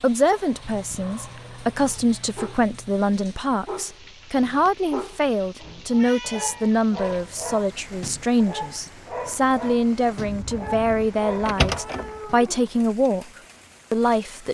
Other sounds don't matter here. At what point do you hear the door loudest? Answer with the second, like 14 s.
12 s.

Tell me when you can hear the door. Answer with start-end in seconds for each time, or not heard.
10.2-12.2.